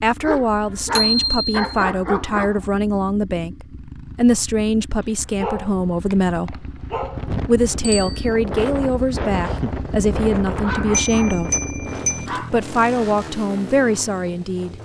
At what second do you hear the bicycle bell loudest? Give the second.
1 s.